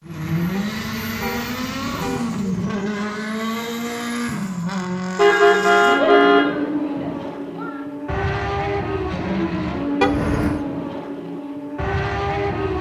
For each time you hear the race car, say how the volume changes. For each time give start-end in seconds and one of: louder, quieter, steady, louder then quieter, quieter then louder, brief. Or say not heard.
0.0-12.7 steady.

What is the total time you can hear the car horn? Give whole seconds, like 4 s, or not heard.
4 s.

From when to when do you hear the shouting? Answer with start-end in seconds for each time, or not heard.
6.0-7.8.